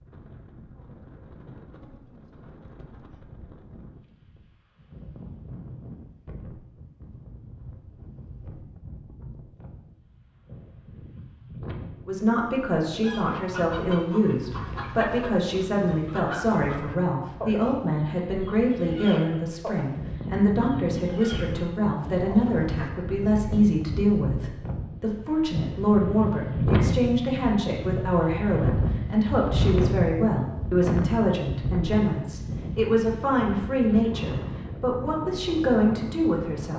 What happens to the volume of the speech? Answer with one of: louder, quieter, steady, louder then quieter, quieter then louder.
steady.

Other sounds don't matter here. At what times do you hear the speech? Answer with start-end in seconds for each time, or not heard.
12.1-36.7.